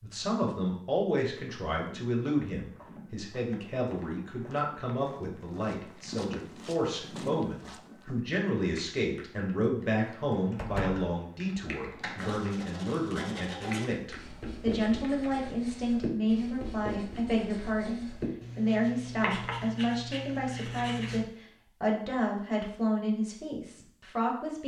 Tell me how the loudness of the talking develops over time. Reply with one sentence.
The loudness of the talking stays about the same.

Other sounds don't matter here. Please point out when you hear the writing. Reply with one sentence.
The writing can be heard from 12.2 to 21.2 s.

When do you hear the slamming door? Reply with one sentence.
The slamming door can be heard from 10.6 to 11.1 s.